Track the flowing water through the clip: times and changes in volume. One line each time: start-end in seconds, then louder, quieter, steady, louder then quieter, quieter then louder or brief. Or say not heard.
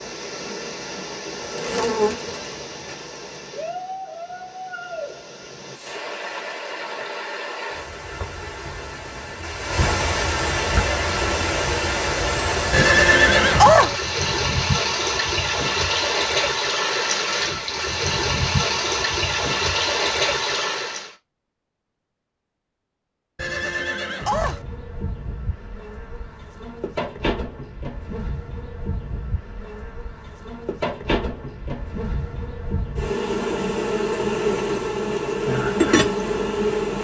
0.0-21.1 louder.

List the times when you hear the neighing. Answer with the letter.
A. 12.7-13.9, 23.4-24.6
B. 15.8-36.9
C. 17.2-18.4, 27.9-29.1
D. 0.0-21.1
A.